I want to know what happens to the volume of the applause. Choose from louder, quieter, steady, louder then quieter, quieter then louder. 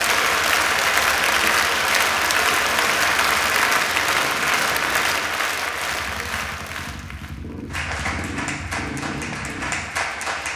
quieter.